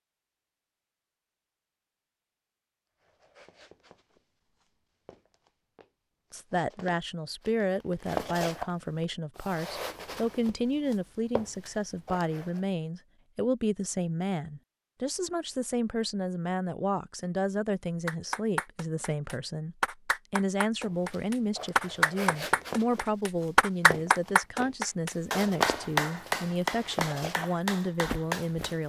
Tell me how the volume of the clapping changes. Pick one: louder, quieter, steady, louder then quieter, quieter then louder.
louder then quieter.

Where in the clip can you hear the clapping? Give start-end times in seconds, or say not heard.
18.1-28.8.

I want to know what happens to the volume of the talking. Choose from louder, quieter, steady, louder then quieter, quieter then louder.
steady.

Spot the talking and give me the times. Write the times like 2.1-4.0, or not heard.
6.3-28.8.